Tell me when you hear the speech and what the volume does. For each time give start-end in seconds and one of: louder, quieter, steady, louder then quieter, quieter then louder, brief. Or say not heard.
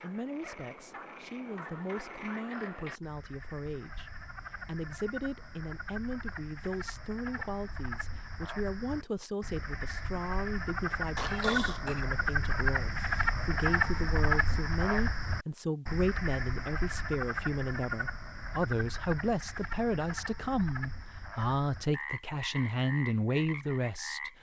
0.0-24.3 louder.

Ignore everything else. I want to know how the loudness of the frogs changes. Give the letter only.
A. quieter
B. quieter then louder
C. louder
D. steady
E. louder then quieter
E.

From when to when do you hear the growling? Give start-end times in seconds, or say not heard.
11.2-12.1.